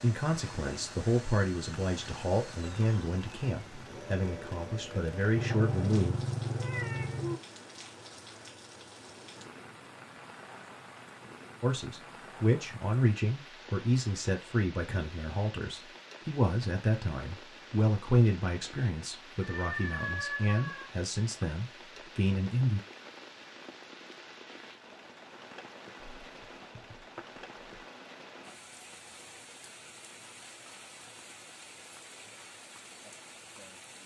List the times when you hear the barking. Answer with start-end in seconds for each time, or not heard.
not heard.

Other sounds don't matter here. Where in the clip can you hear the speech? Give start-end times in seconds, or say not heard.
0.0-6.2, 11.6-22.8.